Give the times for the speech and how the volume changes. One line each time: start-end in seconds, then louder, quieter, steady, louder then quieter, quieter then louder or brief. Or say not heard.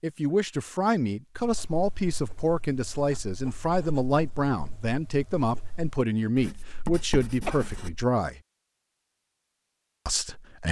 0.0-8.4 steady
10.1-10.6 brief.